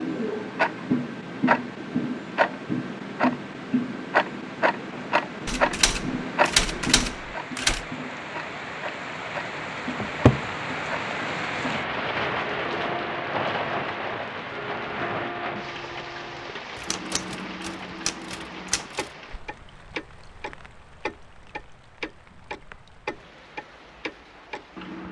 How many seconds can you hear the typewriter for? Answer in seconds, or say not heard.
5 s.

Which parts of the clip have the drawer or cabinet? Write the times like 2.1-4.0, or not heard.
10.0-10.4.